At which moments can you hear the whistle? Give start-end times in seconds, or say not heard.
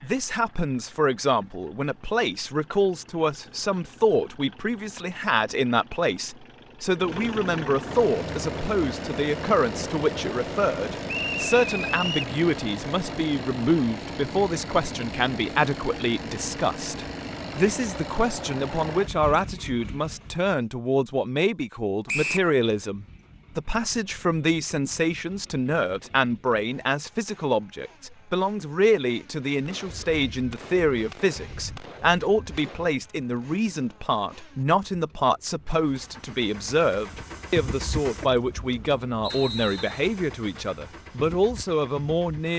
11.1-12.3, 22.1-22.5, 39.2-40.0.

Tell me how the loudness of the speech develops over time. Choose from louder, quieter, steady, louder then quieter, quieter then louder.
steady.